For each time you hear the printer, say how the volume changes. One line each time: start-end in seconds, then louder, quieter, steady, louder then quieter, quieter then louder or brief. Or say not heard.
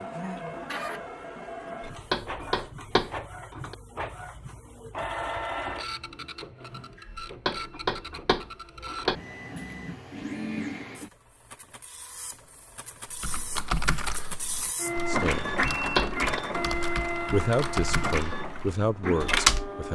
0.0-19.8 louder.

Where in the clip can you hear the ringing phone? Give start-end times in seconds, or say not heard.
not heard.